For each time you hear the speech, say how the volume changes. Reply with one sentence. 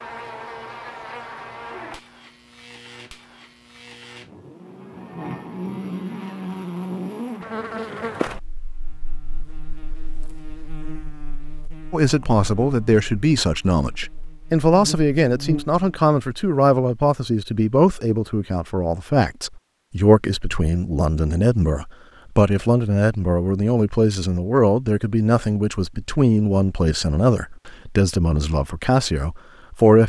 You can hear the speech from 11.9 to 30.0 s, at a steady volume.